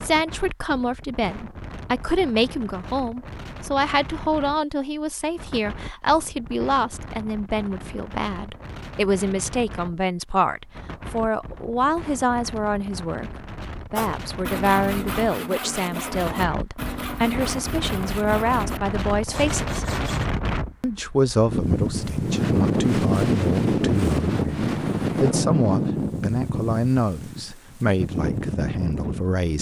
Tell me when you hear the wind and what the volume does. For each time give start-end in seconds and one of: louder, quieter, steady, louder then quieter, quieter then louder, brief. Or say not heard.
0.0-29.5 louder.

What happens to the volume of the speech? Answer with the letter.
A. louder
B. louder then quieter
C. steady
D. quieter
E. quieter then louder
C.